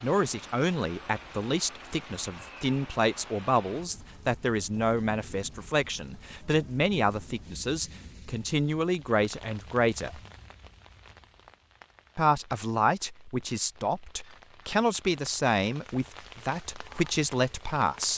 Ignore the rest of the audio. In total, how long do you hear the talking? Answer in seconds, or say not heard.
16 s.